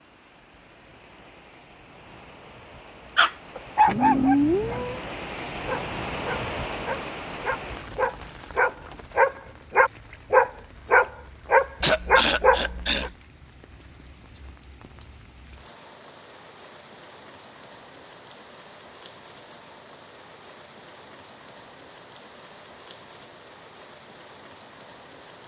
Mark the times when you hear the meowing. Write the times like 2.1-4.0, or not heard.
3.9-5.0.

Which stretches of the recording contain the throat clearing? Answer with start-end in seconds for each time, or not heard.
11.8-13.2.